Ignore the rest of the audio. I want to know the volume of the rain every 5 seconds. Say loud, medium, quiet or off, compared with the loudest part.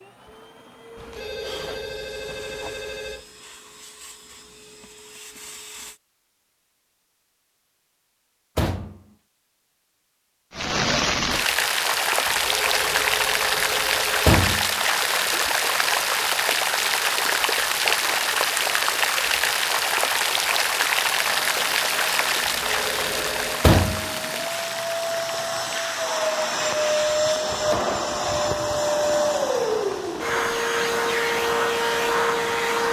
off, off, loud, loud, loud, quiet, quiet.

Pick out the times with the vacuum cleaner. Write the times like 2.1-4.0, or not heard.
0.0-6.0, 21.2-32.8.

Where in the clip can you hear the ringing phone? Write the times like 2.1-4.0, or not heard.
0.9-3.2, 12.2-14.3, 22.4-23.6.